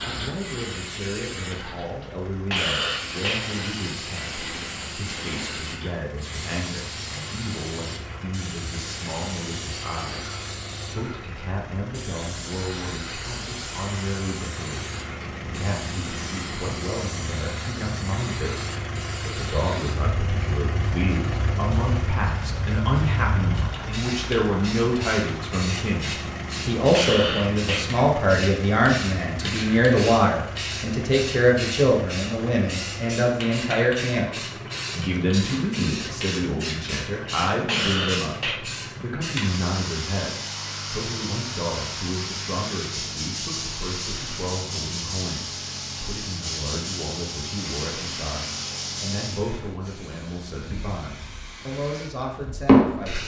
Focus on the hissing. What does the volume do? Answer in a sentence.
The volume of the hissing goes up.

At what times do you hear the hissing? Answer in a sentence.
You can hear the hissing from 0.0 to 53.2 s.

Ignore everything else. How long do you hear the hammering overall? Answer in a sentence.
You can't hear the hammering here.